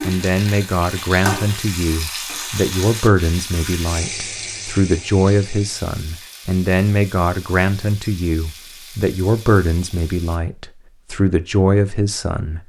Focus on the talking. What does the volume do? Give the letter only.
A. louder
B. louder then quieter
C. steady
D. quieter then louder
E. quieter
C.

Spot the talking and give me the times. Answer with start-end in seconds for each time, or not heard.
0.0-12.6.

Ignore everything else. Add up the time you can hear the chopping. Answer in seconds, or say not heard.
not heard.